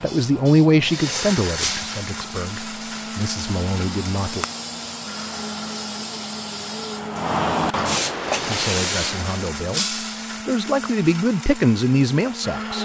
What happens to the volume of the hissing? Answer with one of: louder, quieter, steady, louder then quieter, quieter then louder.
louder.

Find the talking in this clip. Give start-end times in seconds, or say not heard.
0.0-4.5, 8.4-9.8, 10.4-12.8.